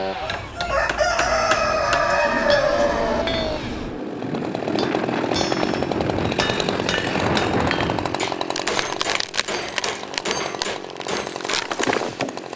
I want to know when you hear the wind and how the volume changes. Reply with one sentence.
The wind can be heard from 0.0 to 8.2 s, getting louder.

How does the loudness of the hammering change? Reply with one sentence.
The volume of the hammering stays about the same.